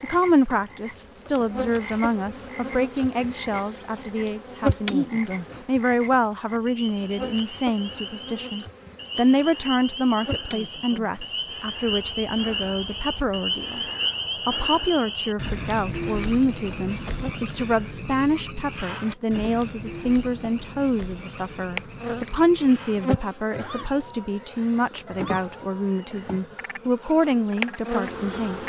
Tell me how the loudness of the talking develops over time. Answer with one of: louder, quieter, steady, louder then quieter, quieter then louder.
steady.